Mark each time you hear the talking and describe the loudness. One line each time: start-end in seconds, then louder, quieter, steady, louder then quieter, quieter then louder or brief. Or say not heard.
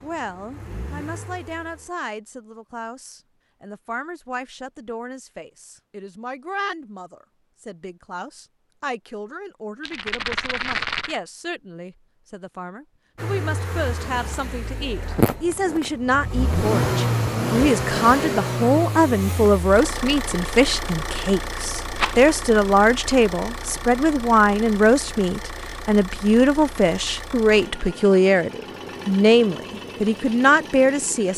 0.0-31.3 louder.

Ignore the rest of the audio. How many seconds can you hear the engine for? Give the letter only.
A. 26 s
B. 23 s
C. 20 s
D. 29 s
C.